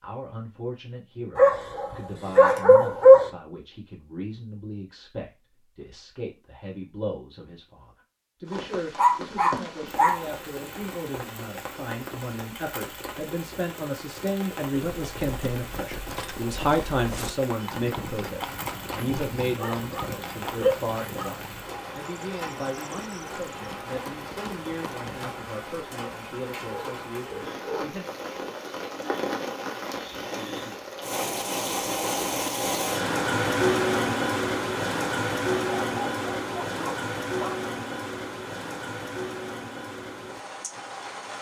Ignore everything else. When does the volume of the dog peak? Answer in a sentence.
The volume of the dog peaks at 3 seconds.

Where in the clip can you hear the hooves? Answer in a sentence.
The hooves can be heard from 14.7 to 25.3 s.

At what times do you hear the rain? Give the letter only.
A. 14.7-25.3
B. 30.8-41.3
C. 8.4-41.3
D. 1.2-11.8
C.